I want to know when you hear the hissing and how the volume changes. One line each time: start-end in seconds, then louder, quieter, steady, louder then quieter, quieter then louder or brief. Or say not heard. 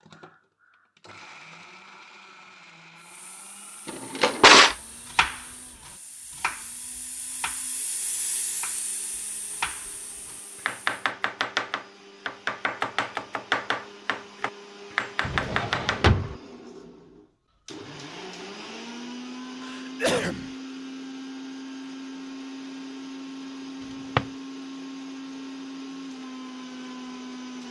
3.0-10.9 louder then quieter.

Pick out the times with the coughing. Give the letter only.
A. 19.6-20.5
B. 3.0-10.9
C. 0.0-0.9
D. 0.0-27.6
A.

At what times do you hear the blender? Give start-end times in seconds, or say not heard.
0.0-27.6.